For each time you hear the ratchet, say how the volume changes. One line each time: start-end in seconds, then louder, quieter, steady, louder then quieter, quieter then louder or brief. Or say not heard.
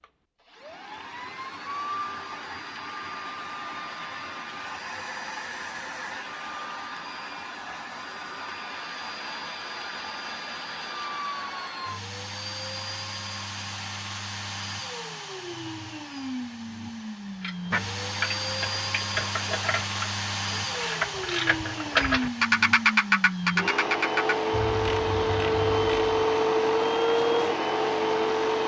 17.4-26.2 louder then quieter.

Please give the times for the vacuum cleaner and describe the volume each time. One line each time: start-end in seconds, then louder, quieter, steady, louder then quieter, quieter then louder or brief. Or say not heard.
0.0-28.6 louder.